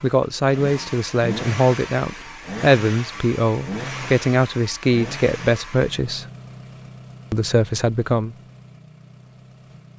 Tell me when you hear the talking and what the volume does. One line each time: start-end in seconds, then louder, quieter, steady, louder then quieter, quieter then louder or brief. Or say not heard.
0.0-6.2 steady
7.3-8.3 brief.